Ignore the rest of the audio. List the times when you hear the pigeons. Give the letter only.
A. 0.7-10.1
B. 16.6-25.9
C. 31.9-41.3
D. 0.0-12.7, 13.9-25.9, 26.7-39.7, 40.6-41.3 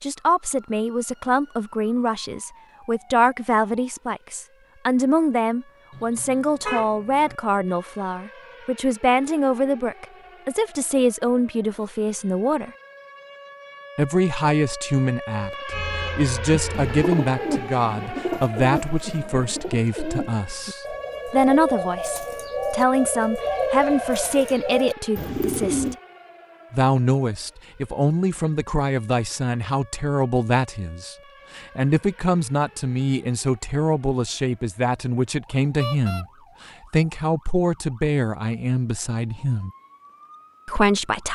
B.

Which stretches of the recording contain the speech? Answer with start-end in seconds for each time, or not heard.
0.0-12.7, 13.9-25.9, 26.7-39.7, 40.6-41.3.